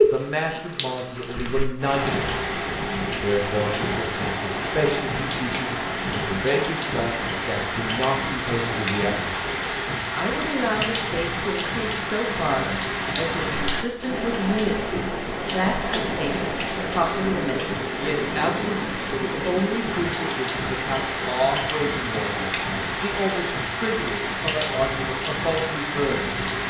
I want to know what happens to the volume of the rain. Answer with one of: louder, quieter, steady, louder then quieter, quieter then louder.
steady.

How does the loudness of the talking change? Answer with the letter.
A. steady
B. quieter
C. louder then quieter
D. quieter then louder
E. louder
A.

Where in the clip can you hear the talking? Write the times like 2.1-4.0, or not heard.
0.0-26.4.